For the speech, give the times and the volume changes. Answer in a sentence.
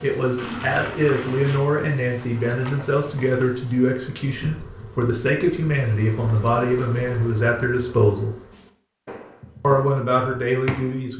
The speech can be heard from 0.0 to 8.3 s, at a steady volume; and briefly from 9.6 to 11.1 s.